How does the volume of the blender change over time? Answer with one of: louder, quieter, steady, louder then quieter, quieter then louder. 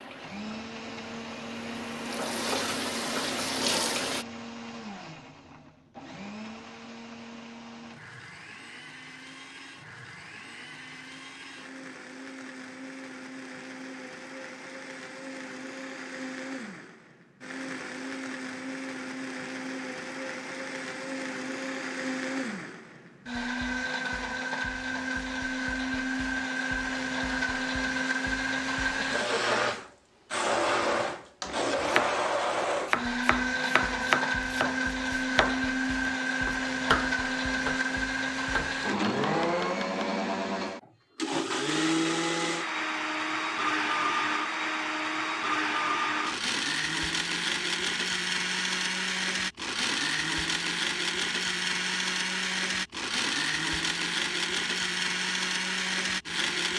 louder.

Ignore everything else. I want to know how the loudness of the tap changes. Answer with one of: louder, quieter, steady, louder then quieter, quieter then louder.
louder.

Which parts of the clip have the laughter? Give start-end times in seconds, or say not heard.
29.0-29.9.